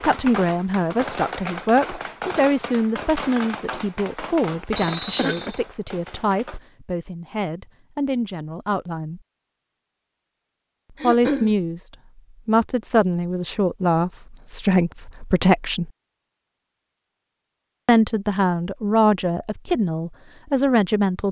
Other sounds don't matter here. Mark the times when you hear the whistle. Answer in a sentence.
You can hear the whistle from 4.8 to 5.6 s.